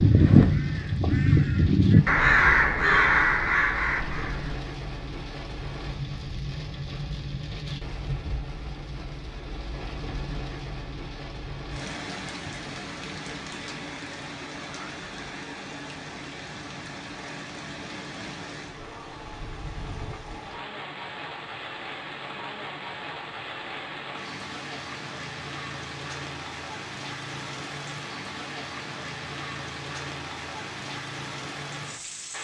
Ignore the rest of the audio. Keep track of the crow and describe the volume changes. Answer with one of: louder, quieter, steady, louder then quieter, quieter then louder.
louder then quieter.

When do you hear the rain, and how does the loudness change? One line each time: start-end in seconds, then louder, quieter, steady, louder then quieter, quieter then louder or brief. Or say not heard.
0.0-32.3 steady.